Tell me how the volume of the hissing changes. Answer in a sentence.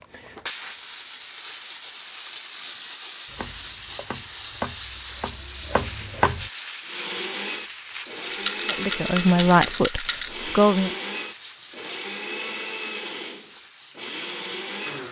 The loudness of the hissing goes down.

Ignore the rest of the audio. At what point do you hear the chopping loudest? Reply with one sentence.
The volume of the chopping peaks at 6 seconds.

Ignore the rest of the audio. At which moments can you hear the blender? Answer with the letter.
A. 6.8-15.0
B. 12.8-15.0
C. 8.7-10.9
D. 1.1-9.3
A.